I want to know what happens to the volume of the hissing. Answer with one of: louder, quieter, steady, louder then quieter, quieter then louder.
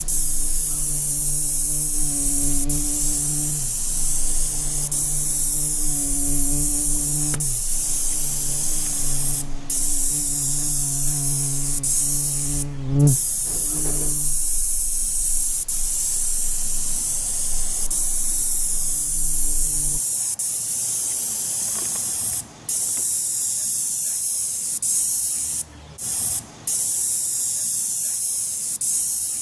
steady.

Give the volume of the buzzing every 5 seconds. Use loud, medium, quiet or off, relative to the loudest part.
medium, medium, loud, quiet, off, off.